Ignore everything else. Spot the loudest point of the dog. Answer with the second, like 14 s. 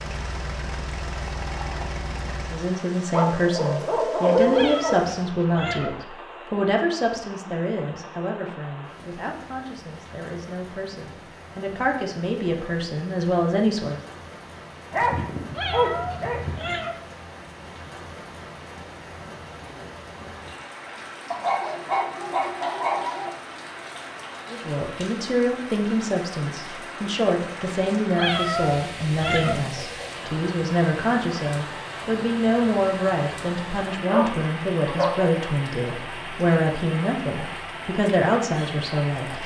4 s.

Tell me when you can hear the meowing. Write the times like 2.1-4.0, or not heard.
4.5-5.9, 15.6-16.9, 28.1-29.6.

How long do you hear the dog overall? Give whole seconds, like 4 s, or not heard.
7 s.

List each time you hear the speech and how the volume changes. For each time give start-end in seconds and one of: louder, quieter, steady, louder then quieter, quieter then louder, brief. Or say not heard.
2.5-14.0 quieter then louder
24.5-39.4 steady.